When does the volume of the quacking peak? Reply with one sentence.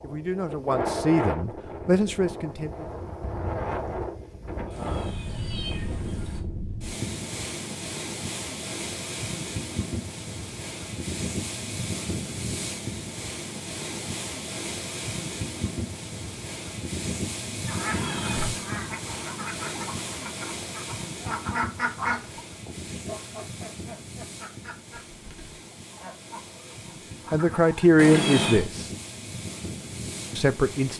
The volume of the quacking peaks at 22 seconds.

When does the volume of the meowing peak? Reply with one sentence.
The volume of the meowing peaks at 28 seconds.